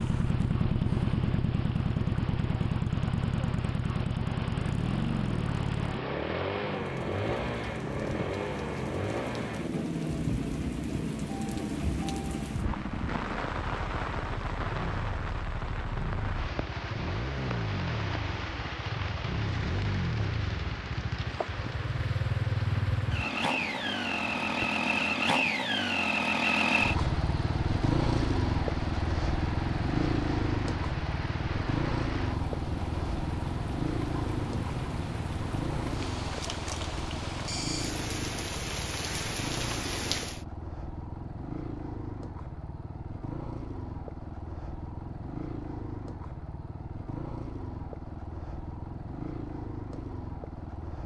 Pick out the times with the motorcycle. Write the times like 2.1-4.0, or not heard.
0.0-51.0.